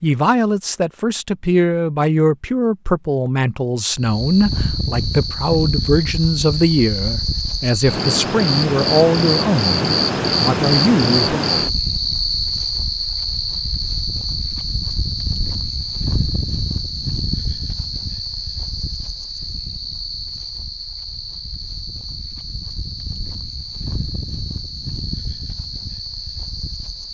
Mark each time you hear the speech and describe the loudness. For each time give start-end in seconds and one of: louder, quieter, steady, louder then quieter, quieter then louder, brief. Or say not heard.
0.0-11.4 steady.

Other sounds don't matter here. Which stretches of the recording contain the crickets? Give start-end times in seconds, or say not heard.
4.0-27.1.